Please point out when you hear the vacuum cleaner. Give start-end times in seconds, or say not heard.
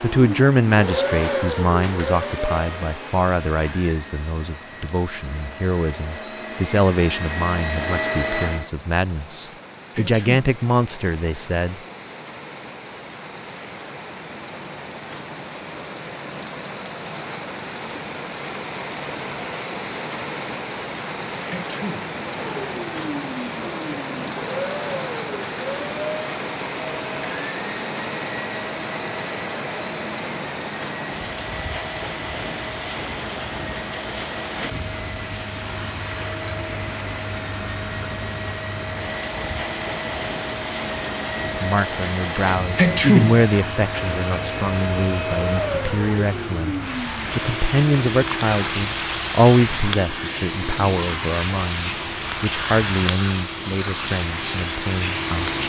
0.0-8.7, 22.2-55.6.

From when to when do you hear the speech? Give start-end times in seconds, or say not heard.
0.0-11.8, 41.4-55.5.